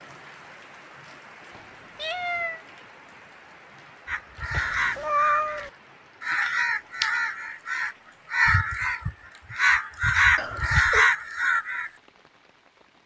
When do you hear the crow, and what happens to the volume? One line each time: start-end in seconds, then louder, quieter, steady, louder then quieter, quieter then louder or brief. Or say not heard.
4.0-11.9 louder.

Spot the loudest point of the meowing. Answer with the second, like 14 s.
5 s.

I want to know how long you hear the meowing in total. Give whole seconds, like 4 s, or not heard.
3 s.